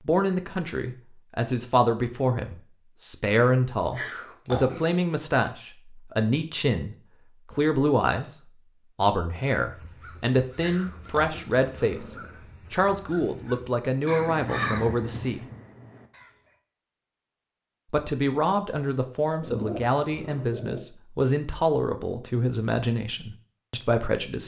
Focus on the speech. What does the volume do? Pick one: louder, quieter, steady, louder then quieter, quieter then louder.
steady.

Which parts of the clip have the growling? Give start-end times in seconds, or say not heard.
4.0-4.9, 10.6-12.4, 19.4-20.9.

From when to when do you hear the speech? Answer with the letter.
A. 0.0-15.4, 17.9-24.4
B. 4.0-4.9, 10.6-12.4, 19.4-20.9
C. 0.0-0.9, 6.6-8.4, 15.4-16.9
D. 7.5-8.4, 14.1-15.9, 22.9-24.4
A.